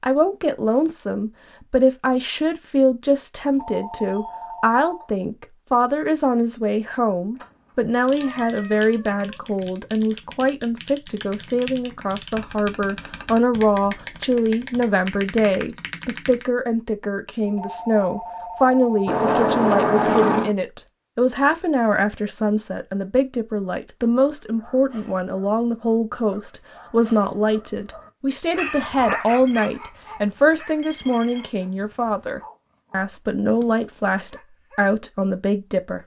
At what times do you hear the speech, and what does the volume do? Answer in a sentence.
The speech can be heard from 0.0 to 36.0 s, at a steady volume.